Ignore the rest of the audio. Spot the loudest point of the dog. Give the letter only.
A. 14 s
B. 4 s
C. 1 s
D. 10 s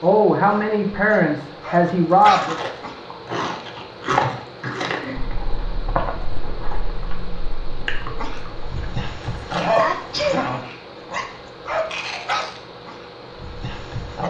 D.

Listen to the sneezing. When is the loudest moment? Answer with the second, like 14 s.
10 s.